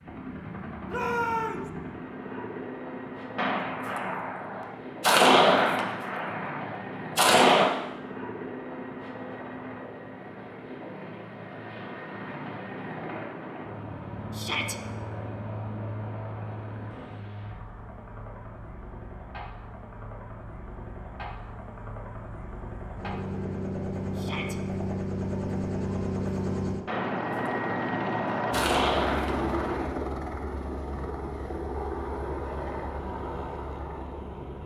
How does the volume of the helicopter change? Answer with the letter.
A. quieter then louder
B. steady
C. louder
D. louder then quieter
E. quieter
C.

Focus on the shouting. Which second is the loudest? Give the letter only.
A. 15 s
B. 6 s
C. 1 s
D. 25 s
C.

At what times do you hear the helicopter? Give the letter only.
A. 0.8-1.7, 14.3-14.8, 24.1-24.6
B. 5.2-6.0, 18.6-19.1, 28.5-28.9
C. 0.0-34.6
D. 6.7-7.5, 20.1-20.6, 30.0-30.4
C.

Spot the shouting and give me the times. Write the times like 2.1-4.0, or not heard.
0.8-1.7, 14.3-14.8, 24.1-24.6.